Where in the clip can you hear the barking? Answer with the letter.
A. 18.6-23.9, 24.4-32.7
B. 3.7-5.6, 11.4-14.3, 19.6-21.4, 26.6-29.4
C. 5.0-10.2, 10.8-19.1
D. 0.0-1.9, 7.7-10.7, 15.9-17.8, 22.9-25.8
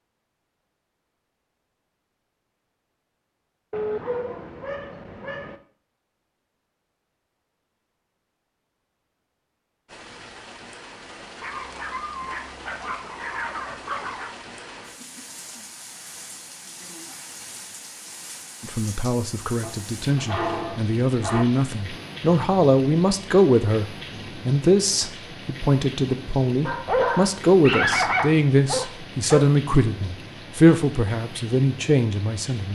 B.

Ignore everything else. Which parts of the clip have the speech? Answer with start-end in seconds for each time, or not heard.
18.6-23.9, 24.4-32.7.